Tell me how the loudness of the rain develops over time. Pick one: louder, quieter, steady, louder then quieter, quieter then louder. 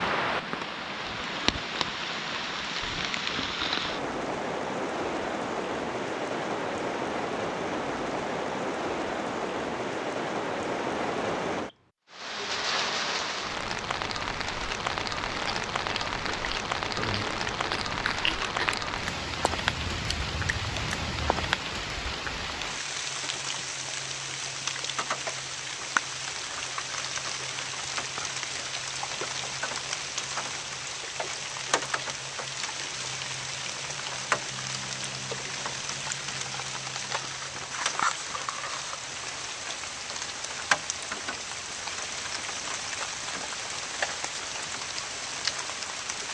steady.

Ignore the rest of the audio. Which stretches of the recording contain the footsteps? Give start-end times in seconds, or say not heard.
not heard.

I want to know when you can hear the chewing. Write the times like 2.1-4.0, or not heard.
15.3-21.6.